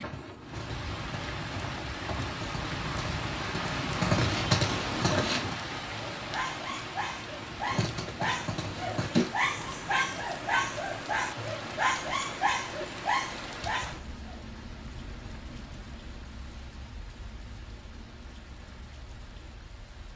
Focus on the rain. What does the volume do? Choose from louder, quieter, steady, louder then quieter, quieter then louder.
quieter.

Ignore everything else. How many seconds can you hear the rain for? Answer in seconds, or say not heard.
20 s.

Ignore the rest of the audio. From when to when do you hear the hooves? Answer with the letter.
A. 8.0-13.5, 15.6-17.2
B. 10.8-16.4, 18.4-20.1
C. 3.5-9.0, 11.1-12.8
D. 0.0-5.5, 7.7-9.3
D.